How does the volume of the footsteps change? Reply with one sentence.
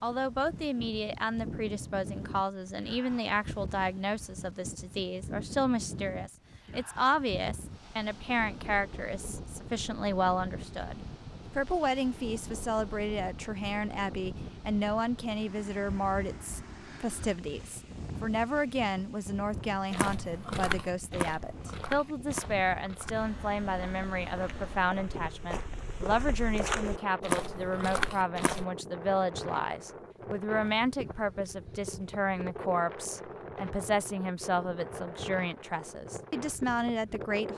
The volume of the footsteps goes down, then up.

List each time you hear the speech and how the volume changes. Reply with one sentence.
You can hear the speech from 0.0 to 37.5 s, at a steady volume.